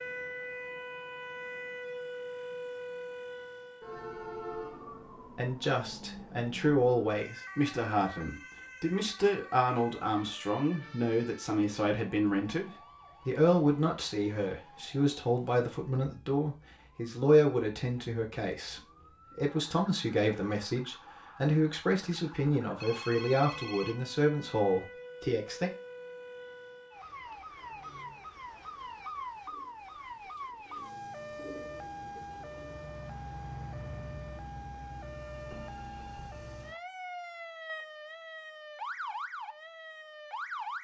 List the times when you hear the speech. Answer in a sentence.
You can hear the speech from 5.3 to 25.7 s.